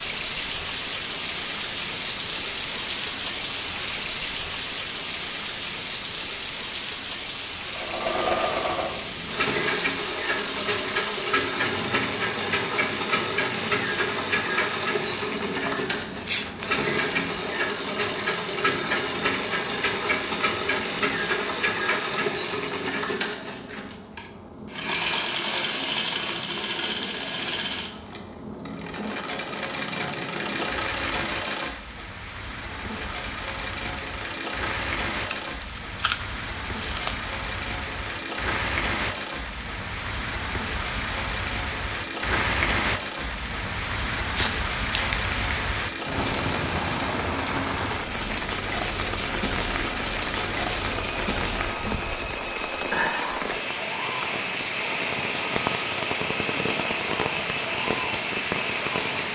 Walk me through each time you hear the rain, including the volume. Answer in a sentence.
You can hear the rain from 0.0 to 59.3 s, getting quieter then louder.